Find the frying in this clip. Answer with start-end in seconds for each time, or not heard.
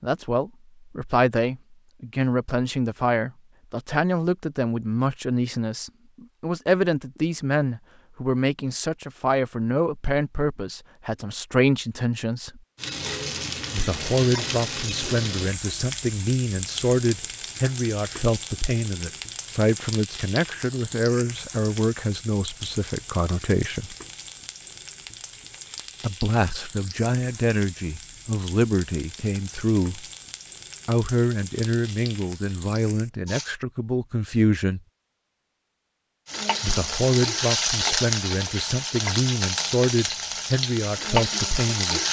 12.8-33.5, 36.2-42.0.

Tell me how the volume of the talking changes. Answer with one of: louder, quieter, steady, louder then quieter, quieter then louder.
steady.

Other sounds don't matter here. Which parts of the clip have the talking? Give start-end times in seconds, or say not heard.
0.0-12.6, 13.7-23.9, 26.0-30.1, 30.9-34.8, 36.6-42.0.